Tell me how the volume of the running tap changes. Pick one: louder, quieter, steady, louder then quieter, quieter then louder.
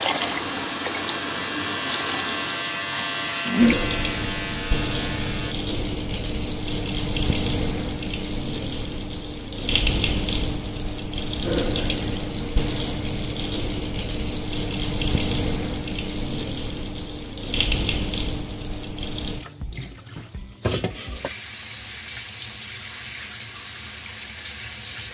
quieter.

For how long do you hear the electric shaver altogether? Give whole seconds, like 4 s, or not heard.
5 s.